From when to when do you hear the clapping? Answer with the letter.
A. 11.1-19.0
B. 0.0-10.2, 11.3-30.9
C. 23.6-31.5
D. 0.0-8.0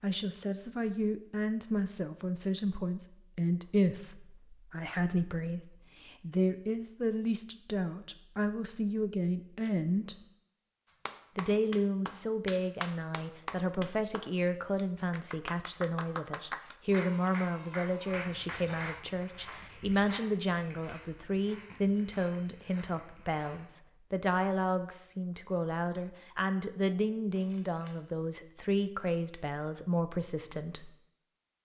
A.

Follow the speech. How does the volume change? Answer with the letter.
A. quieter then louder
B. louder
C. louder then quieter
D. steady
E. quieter
D.